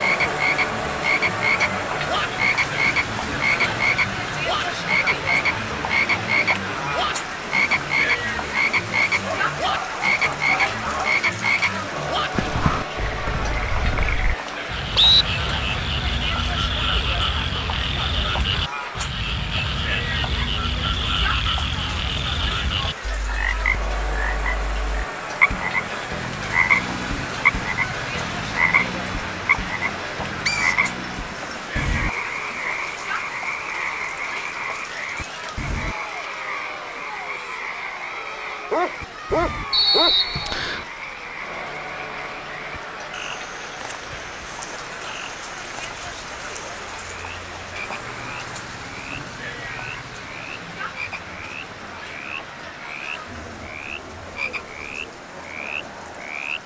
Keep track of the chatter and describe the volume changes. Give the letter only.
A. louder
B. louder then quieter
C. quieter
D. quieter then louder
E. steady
C.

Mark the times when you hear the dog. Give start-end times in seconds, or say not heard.
9.2-11.2, 38.7-40.1.